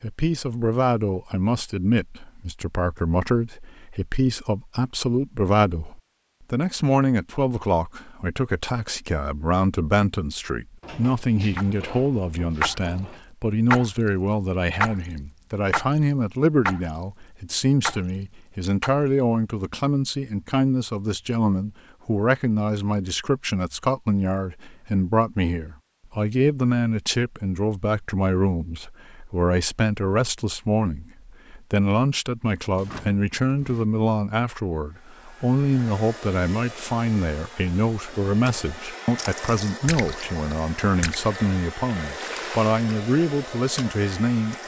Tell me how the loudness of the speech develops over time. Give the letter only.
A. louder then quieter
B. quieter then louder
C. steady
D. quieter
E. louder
C.